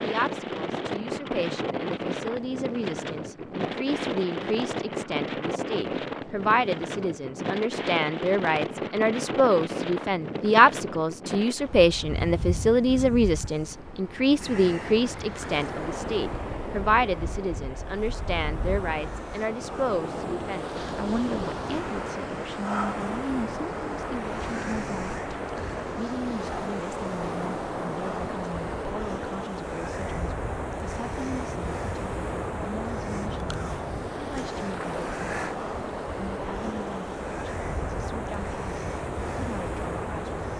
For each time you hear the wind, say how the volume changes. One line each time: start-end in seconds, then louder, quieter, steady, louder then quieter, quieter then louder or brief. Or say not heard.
0.0-40.5 steady.